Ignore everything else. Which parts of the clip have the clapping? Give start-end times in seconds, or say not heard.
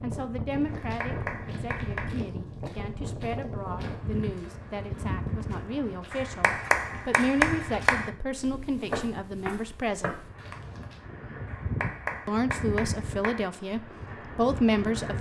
0.8-2.1, 6.1-8.1, 11.4-13.4.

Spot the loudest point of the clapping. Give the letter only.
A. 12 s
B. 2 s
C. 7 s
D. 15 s
C.